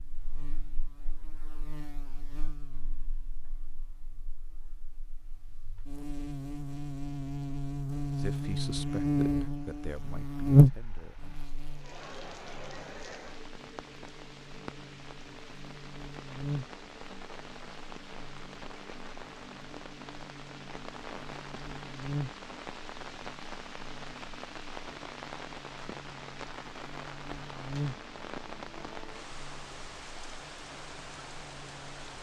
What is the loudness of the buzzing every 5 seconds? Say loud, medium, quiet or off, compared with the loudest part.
quiet, medium, loud, quiet, quiet, quiet, quiet.